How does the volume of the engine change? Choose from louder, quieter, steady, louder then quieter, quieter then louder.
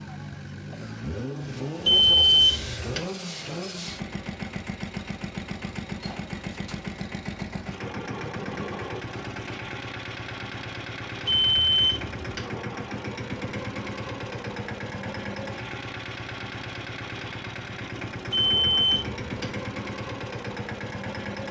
steady.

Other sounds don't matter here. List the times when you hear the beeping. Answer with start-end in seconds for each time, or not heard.
1.9-3.0, 11.2-12.4, 18.3-19.4.